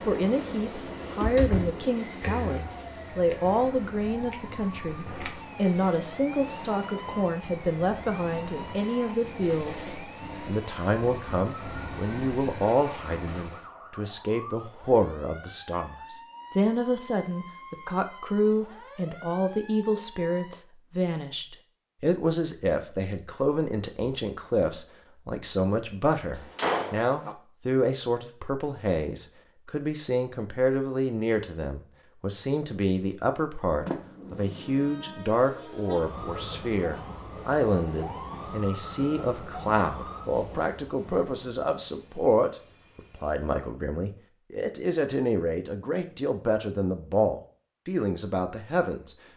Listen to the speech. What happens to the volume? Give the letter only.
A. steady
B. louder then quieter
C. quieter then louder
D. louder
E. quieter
A.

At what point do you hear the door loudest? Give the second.
27 s.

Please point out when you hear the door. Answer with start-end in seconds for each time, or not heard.
1.1-2.6, 26.4-27.4, 33.9-35.2.